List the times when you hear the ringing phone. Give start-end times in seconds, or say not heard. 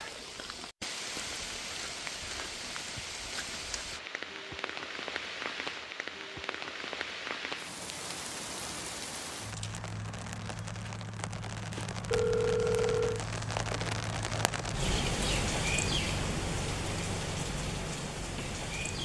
12.1-13.2.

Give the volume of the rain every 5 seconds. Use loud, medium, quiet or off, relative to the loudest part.
medium, medium, loud, loud.